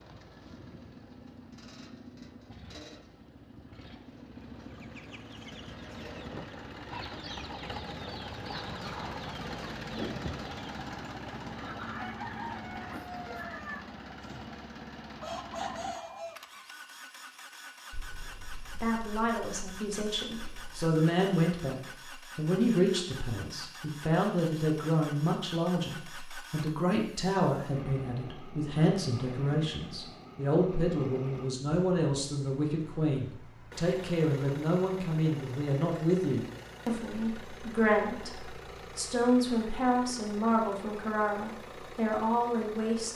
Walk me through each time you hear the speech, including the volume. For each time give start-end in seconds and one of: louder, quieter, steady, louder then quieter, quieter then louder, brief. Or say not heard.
18.8-43.1 steady.